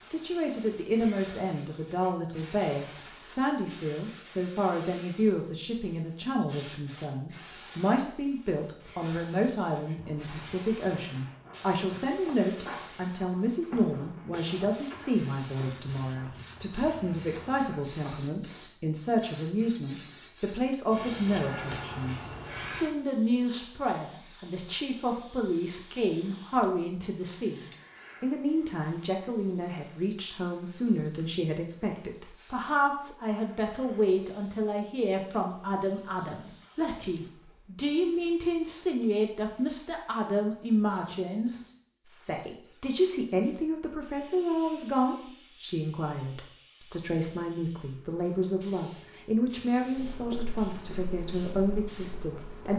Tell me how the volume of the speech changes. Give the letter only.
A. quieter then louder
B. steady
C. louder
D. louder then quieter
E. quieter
B.